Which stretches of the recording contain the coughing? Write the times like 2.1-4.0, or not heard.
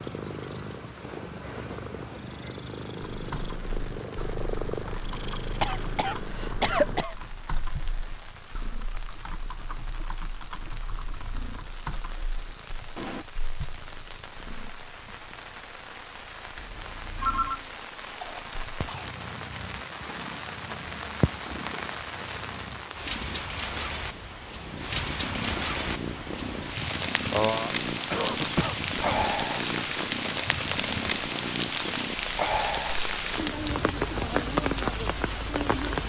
5.6-7.2, 17.4-19.1, 27.3-29.1.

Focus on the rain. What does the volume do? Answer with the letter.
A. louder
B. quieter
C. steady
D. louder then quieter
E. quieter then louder
A.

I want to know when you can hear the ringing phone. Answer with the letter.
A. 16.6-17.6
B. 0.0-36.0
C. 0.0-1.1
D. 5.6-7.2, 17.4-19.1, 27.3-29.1
A.